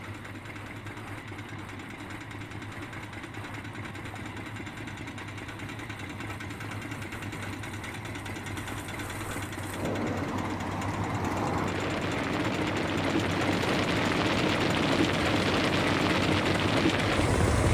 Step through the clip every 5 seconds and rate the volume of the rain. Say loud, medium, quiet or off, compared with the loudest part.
quiet, quiet, loud, loud.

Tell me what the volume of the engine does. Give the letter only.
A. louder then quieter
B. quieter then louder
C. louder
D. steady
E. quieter
C.